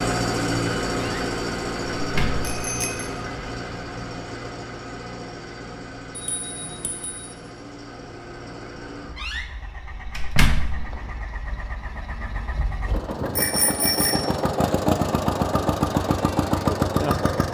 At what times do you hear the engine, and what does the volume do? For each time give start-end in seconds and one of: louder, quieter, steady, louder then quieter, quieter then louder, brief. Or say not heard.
0.0-17.4 quieter then louder.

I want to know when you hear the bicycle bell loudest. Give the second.
14 s.